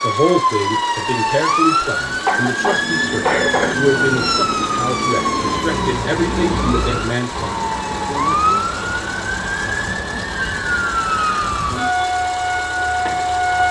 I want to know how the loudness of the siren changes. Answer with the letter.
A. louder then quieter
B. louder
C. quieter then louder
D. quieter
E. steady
E.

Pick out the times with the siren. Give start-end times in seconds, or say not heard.
0.0-13.6.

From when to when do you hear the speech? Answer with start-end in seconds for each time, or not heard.
0.0-7.5.